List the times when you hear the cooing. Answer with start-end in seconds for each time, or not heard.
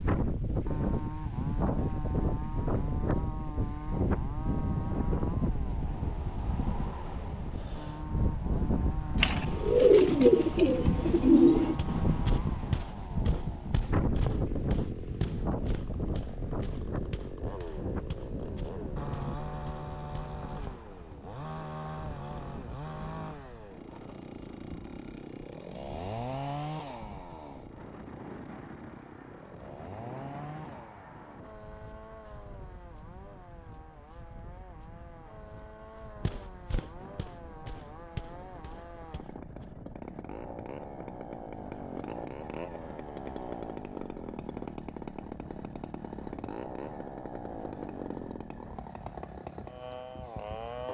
9.2-11.8.